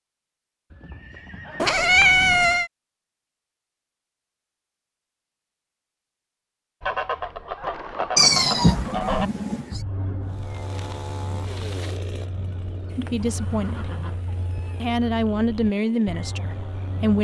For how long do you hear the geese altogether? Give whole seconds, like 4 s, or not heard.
10 s.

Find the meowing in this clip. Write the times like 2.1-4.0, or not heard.
1.6-2.7, 8.2-9.8, 12.9-14.9.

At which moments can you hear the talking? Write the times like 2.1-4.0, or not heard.
12.9-13.9, 14.8-17.1.